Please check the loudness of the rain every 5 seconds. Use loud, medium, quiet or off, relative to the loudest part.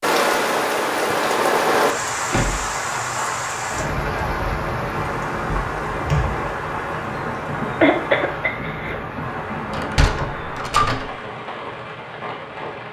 loud, medium, medium.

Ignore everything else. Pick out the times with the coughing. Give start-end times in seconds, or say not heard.
7.8-8.9.